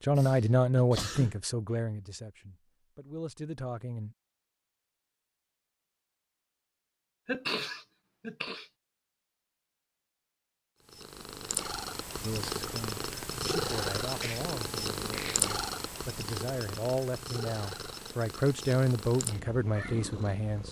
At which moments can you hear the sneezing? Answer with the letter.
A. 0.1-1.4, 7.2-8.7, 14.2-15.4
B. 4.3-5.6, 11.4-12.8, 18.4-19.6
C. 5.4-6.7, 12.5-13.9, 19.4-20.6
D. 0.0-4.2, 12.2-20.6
A.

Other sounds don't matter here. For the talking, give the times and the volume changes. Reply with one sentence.
You can hear the talking from 0.0 to 4.2 s, getting quieter then louder; and from 12.2 to 20.6 s, getting louder.